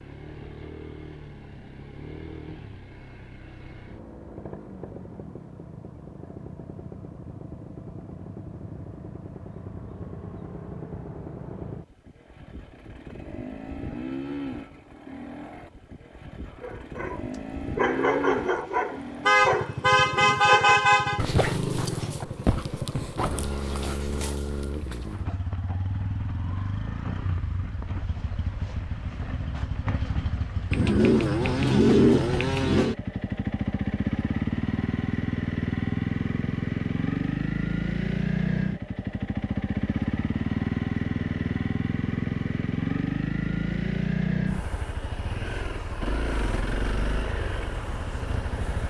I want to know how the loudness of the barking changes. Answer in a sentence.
The volume of the barking goes down.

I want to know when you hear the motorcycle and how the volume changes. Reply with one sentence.
The motorcycle can be heard from 0.0 to 48.8 s, getting louder.